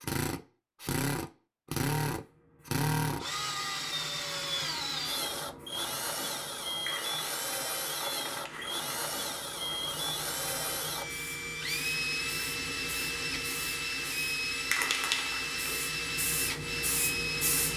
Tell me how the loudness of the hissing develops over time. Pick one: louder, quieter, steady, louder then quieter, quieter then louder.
louder.